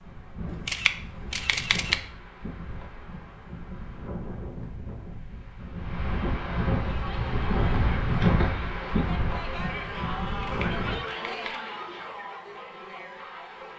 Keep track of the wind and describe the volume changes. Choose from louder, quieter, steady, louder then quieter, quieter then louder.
louder then quieter.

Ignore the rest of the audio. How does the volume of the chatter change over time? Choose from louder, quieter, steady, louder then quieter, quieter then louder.
louder then quieter.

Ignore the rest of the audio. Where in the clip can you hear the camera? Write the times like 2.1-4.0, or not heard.
0.5-2.0, 10.2-11.5.